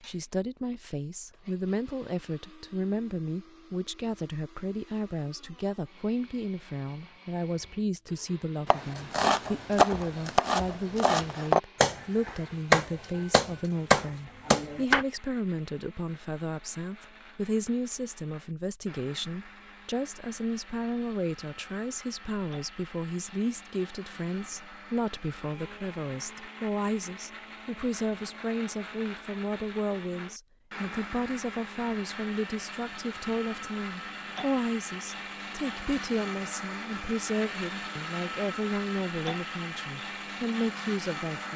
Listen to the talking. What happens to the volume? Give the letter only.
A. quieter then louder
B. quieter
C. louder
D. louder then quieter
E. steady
E.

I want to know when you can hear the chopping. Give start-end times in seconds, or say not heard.
8.7-15.1.